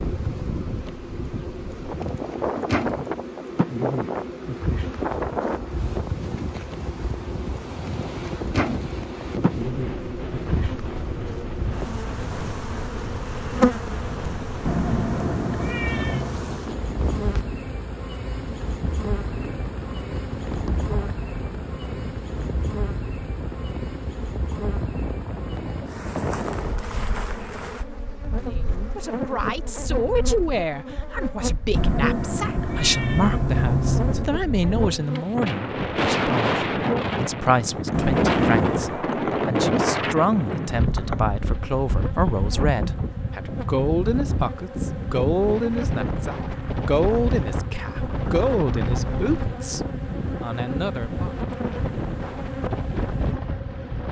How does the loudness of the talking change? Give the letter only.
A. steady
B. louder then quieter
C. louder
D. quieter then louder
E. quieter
A.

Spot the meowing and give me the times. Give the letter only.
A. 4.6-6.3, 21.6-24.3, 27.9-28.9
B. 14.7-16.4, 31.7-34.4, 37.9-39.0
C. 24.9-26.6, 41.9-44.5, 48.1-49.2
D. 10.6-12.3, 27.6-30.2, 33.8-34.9
B.